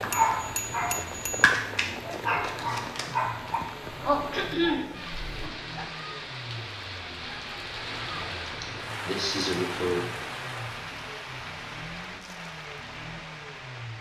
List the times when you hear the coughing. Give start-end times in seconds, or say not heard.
4.3-4.8, 8.4-10.1.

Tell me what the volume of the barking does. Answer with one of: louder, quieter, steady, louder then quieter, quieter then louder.
louder then quieter.